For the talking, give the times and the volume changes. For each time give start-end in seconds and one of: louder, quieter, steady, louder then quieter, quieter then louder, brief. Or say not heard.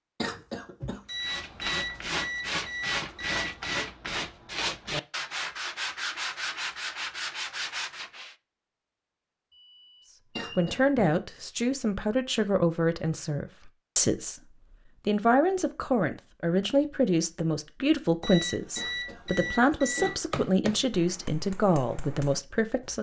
10.6-22.9 steady.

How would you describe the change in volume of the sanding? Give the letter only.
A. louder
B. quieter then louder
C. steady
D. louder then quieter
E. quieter
C.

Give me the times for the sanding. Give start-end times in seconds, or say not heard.
1.2-8.3.